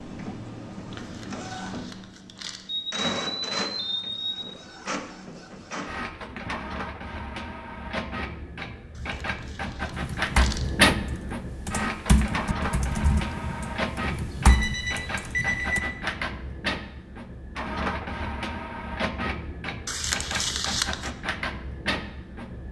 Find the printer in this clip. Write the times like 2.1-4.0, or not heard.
0.0-22.6.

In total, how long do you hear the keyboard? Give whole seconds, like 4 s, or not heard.
6 s.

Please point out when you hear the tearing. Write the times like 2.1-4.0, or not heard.
0.9-2.6, 8.9-10.7, 19.9-21.1.